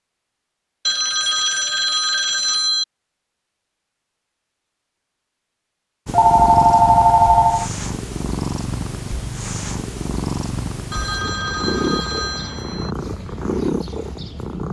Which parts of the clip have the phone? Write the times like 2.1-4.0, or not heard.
0.8-2.9, 6.1-7.7, 10.9-12.9.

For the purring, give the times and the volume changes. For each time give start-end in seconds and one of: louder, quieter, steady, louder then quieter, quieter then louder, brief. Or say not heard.
6.0-14.6 steady.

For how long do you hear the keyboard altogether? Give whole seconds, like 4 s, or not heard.
not heard.